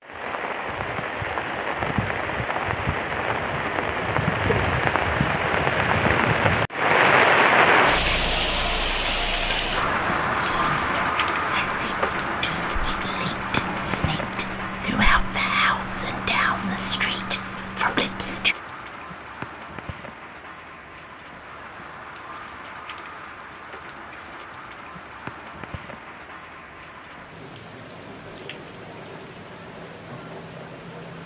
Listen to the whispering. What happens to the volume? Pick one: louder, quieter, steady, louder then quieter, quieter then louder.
louder.